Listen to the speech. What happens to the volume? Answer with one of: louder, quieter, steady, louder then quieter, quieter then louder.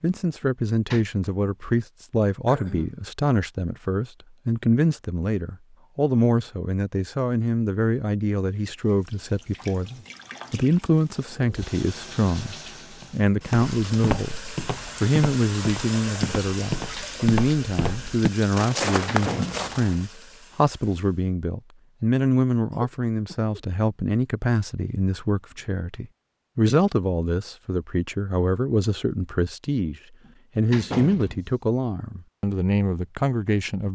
steady.